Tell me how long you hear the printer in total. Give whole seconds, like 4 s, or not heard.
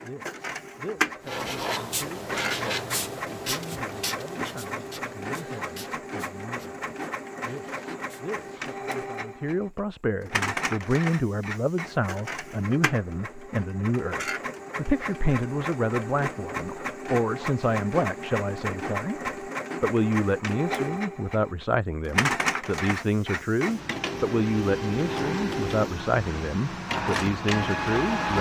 28 s.